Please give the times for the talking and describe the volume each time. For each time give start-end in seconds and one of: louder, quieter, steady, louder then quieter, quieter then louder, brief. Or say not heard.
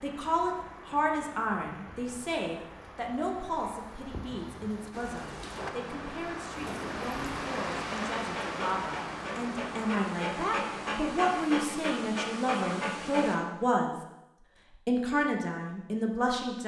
0.0-13.9 quieter then louder
14.8-16.6 brief.